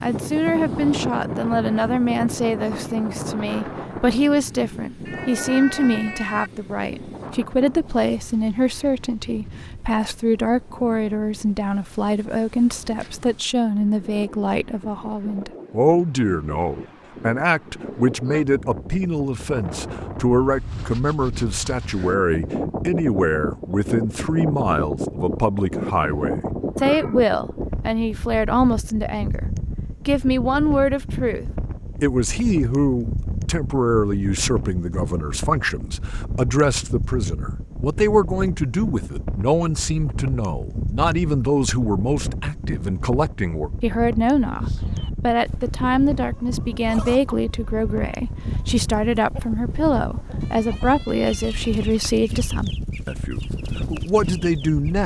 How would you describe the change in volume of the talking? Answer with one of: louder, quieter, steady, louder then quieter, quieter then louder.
steady.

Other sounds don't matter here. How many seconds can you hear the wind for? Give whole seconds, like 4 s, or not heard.
55 s.